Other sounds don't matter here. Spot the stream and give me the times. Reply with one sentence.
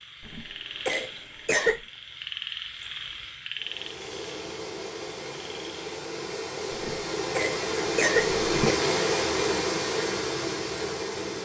You can hear the stream from 3.5 to 11.4 s.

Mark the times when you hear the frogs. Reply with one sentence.
You can hear the frogs from 0.0 to 6.0 s.